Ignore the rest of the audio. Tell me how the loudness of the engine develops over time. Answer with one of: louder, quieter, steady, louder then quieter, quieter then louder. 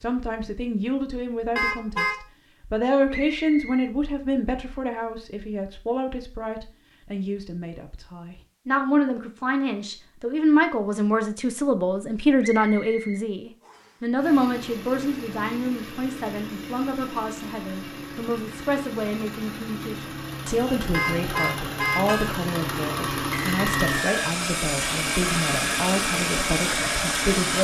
louder.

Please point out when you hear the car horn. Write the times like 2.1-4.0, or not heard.
1.6-2.1, 20.9-22.3.